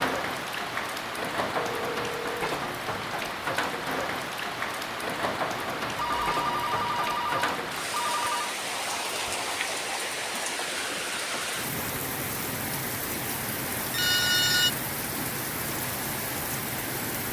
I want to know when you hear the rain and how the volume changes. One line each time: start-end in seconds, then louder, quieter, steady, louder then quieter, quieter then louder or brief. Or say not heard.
0.0-17.2 steady.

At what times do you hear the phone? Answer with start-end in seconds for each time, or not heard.
1.6-2.4, 6.0-8.5, 13.9-14.7.